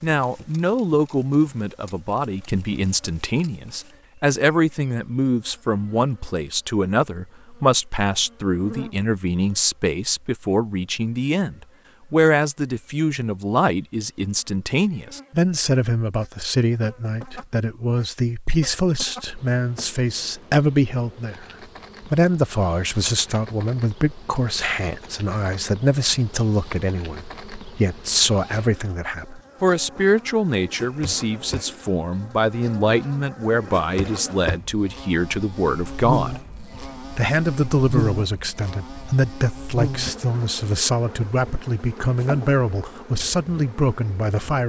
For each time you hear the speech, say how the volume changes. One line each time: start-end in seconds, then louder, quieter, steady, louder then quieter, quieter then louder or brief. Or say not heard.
0.0-21.4 steady
22.1-44.6 steady.